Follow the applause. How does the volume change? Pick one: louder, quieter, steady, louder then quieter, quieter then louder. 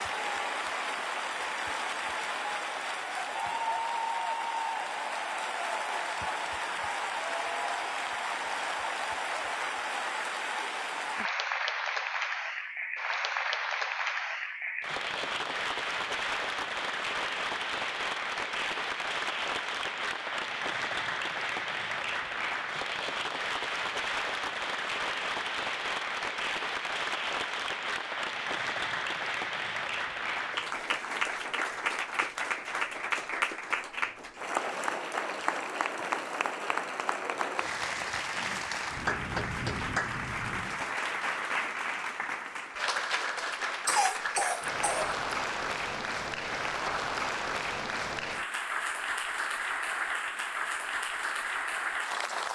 steady.